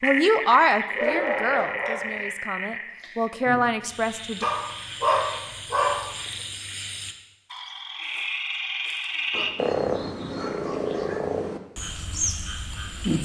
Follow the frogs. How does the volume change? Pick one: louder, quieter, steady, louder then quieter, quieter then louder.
quieter then louder.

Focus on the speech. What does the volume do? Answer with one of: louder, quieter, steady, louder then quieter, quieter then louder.
quieter then louder.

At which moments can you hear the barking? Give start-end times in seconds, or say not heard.
0.9-2.2, 4.4-6.0, 9.3-11.2.